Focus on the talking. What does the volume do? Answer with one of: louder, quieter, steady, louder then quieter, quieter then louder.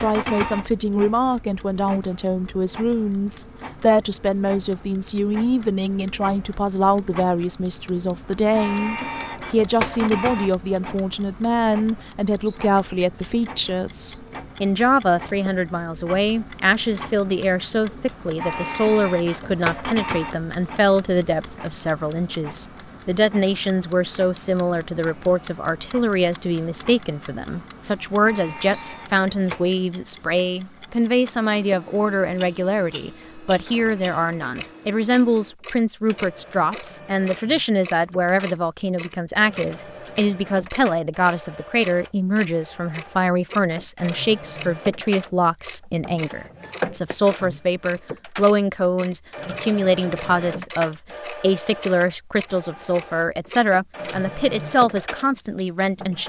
steady.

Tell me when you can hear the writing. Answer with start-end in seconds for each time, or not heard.
not heard.